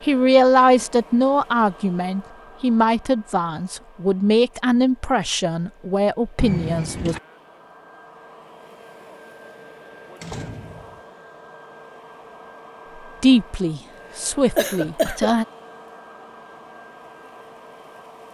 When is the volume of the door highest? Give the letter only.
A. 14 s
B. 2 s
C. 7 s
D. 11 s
C.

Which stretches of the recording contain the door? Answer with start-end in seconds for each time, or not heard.
6.3-7.2, 10.2-11.0.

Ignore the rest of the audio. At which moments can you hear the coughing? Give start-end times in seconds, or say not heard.
14.6-15.3.